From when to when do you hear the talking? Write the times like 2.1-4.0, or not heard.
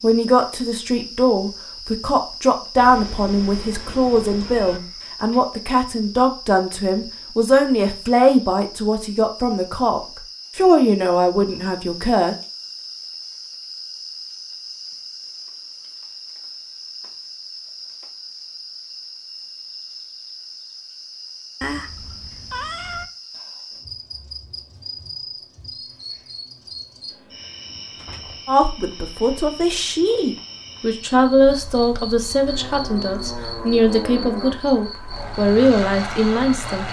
0.0-12.3, 28.4-36.8.